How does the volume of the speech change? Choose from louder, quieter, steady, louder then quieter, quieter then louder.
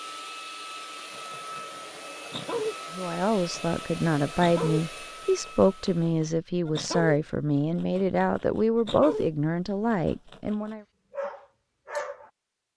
steady.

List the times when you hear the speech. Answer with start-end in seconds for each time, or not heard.
2.9-10.8.